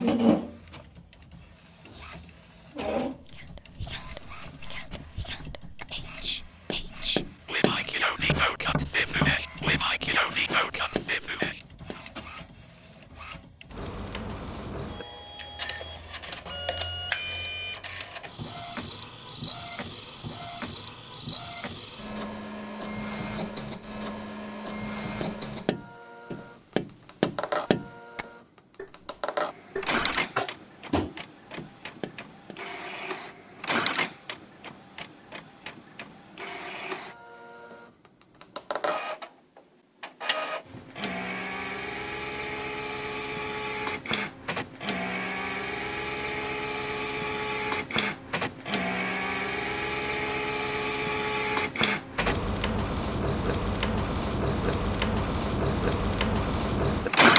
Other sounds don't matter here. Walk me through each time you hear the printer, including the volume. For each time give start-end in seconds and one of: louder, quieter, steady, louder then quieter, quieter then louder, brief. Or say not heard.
0.0-57.3 louder.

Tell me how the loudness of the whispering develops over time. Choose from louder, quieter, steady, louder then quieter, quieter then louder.
louder.